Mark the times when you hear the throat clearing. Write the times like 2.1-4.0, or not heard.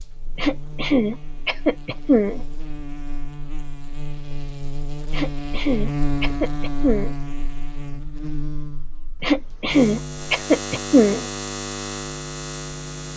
0.3-2.4, 5.1-7.2, 9.2-11.2.